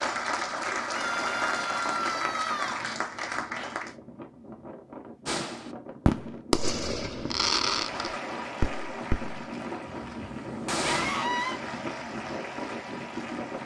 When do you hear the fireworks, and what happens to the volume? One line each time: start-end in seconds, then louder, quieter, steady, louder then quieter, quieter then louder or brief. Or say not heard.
5.2-11.2 quieter.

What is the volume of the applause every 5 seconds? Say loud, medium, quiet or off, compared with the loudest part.
loud, medium, medium.